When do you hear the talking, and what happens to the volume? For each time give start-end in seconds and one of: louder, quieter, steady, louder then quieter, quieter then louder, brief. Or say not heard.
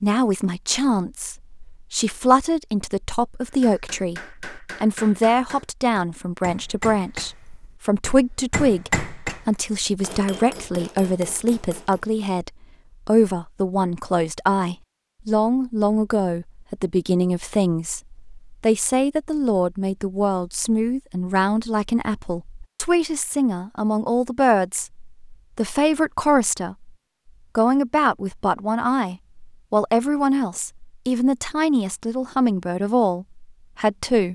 0.0-26.9 steady
27.6-34.2 steady.